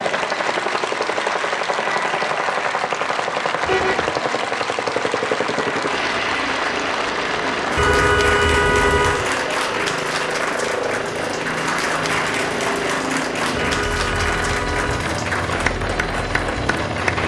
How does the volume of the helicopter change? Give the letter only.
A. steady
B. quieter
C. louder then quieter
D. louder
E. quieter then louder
A.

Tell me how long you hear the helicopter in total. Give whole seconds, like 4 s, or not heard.
17 s.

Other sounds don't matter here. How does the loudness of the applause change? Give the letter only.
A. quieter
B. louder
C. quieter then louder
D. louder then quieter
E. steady
E.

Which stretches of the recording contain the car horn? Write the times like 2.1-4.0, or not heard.
3.6-4.1, 7.8-9.2, 13.5-15.1.